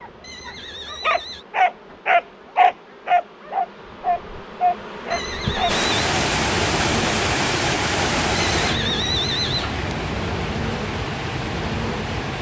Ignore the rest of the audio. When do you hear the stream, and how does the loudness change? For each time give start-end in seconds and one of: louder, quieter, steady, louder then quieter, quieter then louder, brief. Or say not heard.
5.7-12.3 quieter.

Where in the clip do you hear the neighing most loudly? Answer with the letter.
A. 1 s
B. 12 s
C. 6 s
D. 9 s
D.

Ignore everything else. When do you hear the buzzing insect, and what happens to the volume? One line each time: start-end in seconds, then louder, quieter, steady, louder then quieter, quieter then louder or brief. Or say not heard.
0.0-12.3 louder.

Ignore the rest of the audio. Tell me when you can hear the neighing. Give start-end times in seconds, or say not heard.
0.2-1.4, 5.1-5.9, 8.3-9.9.